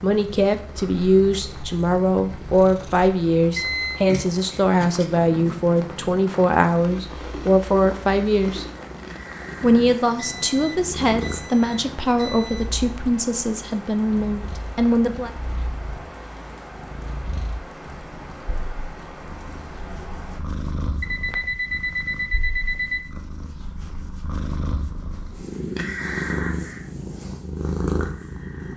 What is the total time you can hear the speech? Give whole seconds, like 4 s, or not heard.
14 s.